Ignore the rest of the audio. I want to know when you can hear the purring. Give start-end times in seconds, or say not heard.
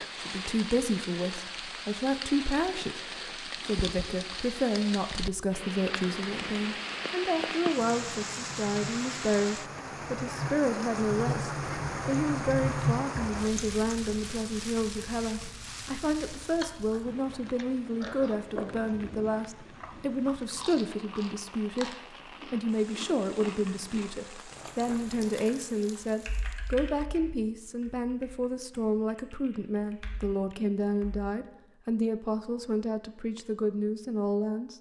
not heard.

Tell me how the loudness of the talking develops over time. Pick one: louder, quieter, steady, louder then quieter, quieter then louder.
steady.